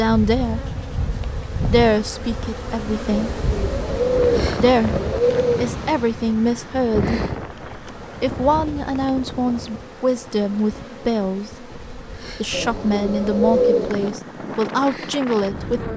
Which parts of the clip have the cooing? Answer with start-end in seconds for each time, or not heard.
3.1-5.8, 12.5-14.1.